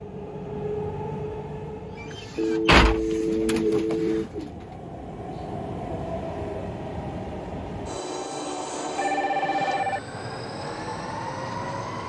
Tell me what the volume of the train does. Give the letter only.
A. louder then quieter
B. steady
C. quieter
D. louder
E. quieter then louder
E.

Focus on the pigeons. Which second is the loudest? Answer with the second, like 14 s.
3 s.